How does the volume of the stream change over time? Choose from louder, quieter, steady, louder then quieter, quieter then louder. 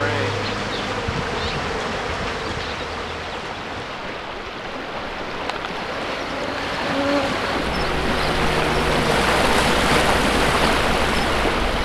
louder.